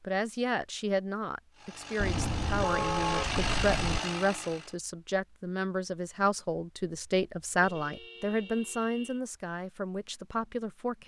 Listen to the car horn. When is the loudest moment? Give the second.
3 s.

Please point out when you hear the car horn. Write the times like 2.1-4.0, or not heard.
2.0-4.0, 7.6-9.2.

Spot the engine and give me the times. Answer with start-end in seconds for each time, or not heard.
1.6-4.8.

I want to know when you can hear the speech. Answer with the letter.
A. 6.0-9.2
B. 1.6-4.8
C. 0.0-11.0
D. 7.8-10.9
C.